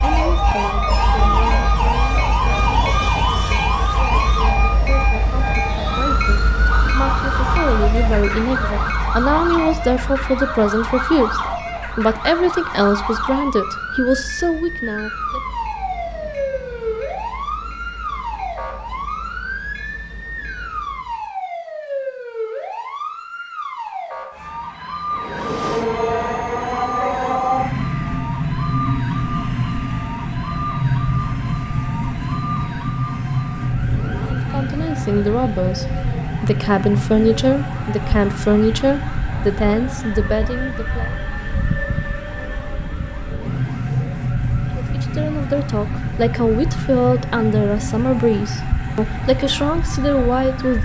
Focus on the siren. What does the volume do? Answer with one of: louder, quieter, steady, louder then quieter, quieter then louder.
quieter.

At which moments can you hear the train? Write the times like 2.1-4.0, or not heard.
0.0-21.3, 25.1-50.8.